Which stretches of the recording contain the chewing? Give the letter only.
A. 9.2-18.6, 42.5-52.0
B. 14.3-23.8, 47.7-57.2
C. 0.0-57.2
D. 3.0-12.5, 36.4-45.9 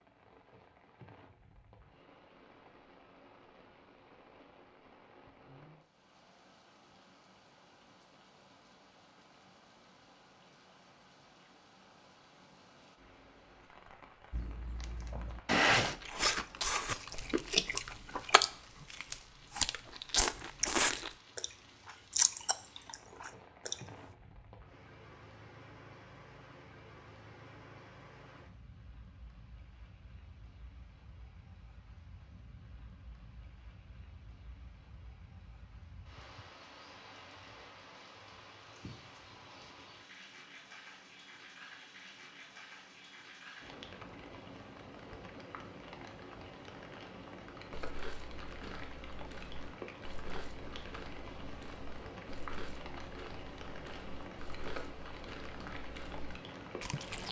B.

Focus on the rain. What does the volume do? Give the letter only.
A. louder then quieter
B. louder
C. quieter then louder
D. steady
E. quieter
B.